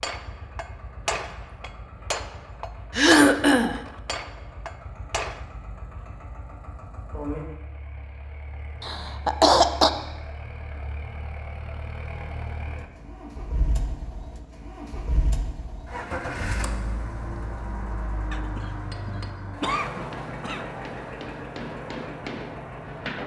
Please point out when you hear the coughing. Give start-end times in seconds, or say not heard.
2.9-3.8, 8.8-9.9, 18.3-20.7.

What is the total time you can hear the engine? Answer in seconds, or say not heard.
23 s.